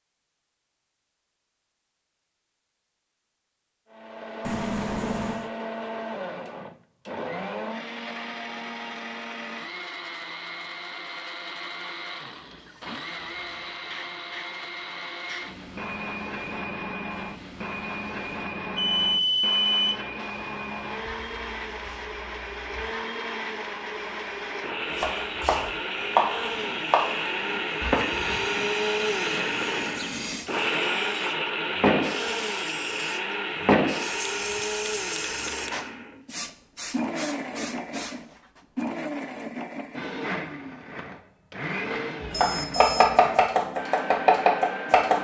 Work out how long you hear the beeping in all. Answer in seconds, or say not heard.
3 s.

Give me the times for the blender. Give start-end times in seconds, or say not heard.
3.9-45.1.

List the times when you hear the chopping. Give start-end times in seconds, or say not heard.
24.9-28.5, 42.2-45.1.